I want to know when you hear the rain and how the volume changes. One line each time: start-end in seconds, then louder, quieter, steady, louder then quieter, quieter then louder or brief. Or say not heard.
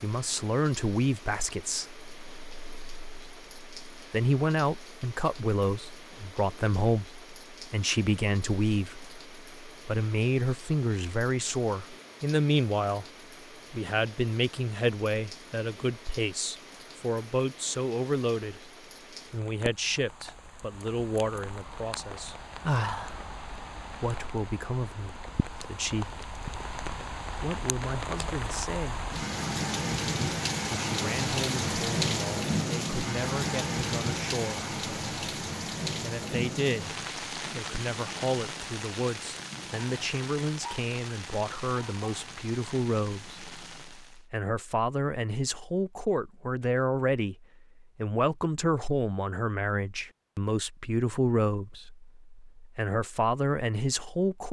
0.0-44.2 louder then quieter.